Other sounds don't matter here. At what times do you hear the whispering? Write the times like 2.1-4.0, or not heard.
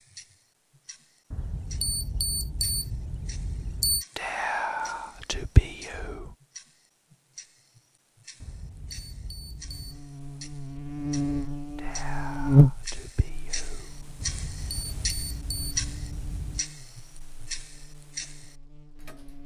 4.2-6.3, 11.8-14.3.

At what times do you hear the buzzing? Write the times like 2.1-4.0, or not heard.
9.6-19.4.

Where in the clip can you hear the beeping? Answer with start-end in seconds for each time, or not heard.
1.3-4.0, 8.4-10.1, 14.2-16.6.